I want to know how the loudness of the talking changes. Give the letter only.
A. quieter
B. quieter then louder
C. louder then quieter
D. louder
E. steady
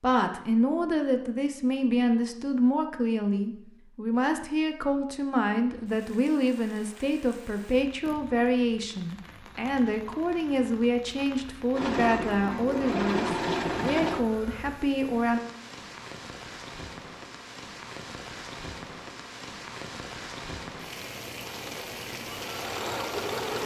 E.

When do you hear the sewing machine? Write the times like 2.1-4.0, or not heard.
11.7-14.2, 21.4-23.6.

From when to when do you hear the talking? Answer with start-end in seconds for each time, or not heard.
0.0-15.4.